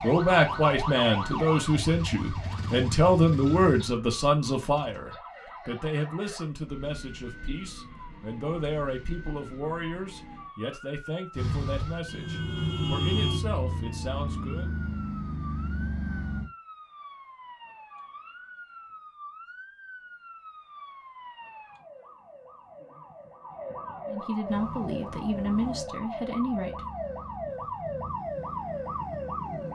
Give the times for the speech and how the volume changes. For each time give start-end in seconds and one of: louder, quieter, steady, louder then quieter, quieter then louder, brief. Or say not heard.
0.0-14.7 quieter
24.1-26.8 brief.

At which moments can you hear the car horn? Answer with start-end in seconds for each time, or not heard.
12.1-13.4.